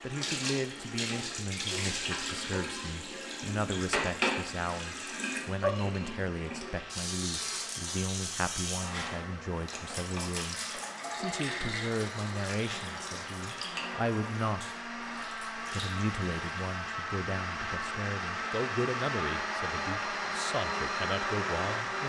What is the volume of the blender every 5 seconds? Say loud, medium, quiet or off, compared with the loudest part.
quiet, quiet, medium, loud, loud.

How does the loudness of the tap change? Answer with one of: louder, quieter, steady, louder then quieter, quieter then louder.
quieter.